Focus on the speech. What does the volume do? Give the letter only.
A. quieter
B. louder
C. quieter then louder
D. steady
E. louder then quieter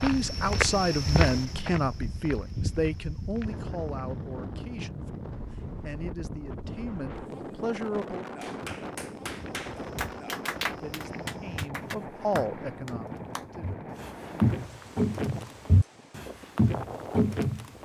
C.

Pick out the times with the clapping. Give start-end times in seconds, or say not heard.
8.4-13.4.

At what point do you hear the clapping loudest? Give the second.
11 s.